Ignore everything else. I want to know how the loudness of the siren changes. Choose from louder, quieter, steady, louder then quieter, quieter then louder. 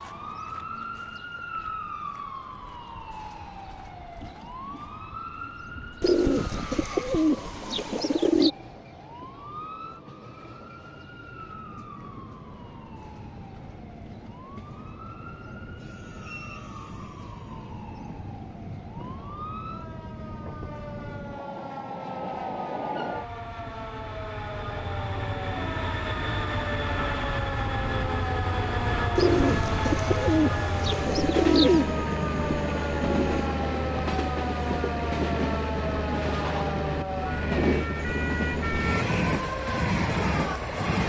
quieter then louder.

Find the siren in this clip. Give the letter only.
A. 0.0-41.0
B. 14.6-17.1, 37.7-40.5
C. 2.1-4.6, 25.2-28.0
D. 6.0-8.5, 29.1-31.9
A.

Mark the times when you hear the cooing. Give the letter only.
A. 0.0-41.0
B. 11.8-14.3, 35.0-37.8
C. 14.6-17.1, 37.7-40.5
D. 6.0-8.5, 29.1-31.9
D.